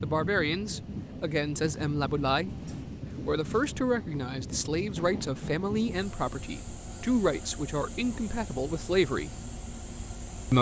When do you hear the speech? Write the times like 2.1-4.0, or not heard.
0.0-2.5, 3.2-9.3.